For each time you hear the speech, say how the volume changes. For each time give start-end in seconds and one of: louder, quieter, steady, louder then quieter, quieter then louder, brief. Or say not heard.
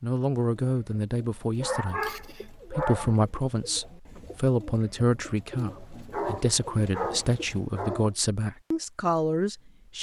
0.0-9.9 steady.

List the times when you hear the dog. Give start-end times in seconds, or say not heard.
1.6-3.1, 5.7-8.2.